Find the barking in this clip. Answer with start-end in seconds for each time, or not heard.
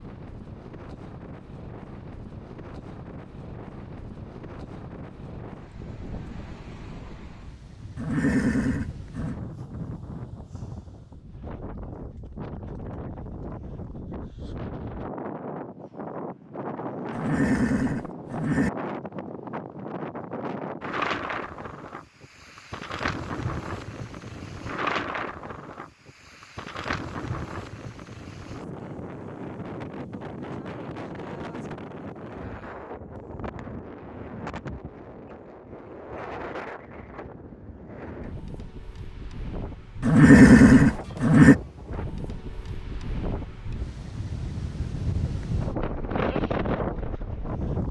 not heard.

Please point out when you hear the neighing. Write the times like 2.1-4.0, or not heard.
8.0-9.3, 17.1-18.7, 40.0-41.5.